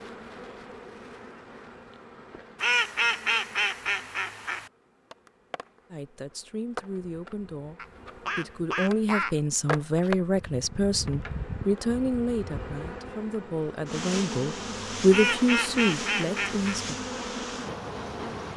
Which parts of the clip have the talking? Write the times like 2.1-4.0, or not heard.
5.9-17.0.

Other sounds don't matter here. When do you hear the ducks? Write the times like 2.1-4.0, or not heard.
2.6-4.7, 7.8-9.4, 15.1-16.8.